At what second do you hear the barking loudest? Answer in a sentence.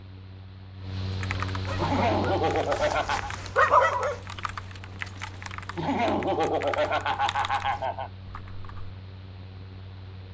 The volume of the barking peaks at 4 seconds.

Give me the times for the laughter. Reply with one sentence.
The laughter can be heard from 1.8 to 3.3 s and from 5.8 to 8.1 s.